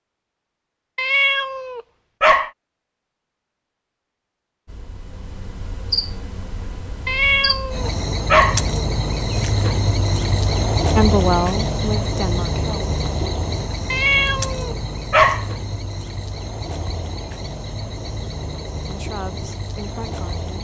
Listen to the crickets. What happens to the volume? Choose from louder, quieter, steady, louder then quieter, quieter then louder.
louder then quieter.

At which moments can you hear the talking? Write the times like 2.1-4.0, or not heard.
10.9-12.8, 18.9-20.5.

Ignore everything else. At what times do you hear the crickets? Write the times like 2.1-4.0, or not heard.
4.7-20.6.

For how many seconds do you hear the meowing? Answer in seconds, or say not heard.
5 s.